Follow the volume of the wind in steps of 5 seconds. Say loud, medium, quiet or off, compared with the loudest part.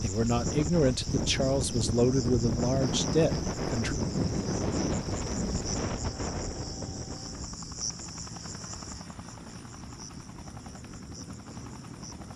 loud, medium, quiet.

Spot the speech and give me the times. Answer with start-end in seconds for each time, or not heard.
0.0-4.0.